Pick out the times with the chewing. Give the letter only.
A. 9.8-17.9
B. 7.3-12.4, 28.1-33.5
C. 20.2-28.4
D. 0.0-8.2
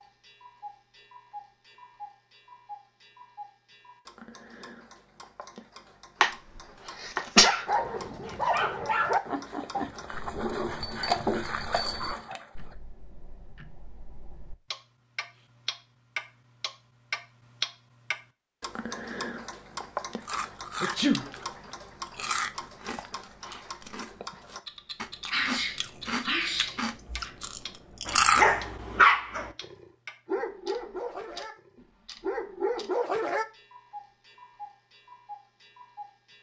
C.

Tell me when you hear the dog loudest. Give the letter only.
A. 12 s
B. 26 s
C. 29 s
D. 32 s
C.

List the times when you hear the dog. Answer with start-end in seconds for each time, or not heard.
7.3-12.4, 28.1-33.5.